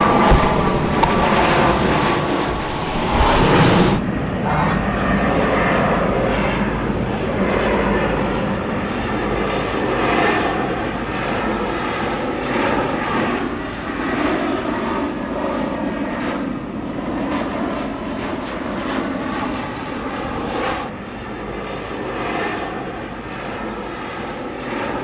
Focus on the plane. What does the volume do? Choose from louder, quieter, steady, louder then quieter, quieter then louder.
quieter.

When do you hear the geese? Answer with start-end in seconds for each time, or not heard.
4.4-5.2.